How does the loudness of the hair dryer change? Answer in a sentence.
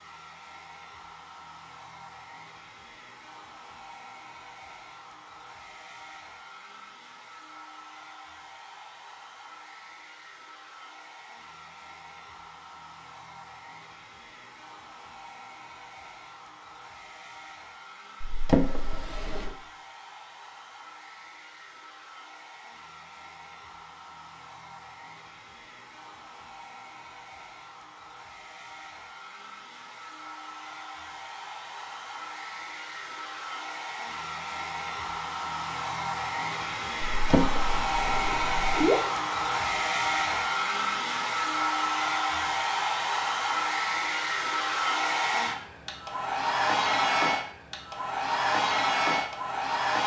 The volume of the hair dryer goes up.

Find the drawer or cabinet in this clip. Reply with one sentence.
You can hear the drawer or cabinet from 18.2 to 19.6 s and from 37.1 to 38.8 s.